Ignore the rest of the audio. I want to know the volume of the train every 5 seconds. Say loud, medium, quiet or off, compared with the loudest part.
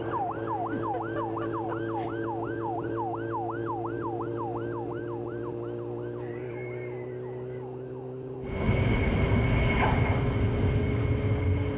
off, loud, loud.